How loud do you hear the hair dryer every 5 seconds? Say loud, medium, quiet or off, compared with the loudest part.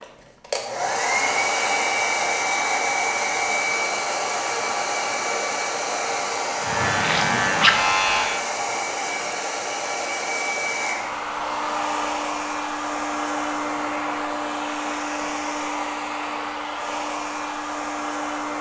loud, loud, loud, medium.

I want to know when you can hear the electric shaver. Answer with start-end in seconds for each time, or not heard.
6.6-8.4.